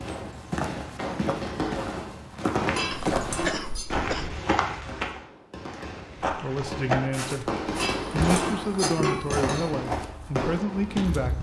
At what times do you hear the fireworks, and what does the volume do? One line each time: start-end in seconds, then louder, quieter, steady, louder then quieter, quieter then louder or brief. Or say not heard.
0.0-10.9 quieter then louder.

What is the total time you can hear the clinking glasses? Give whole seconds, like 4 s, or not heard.
3 s.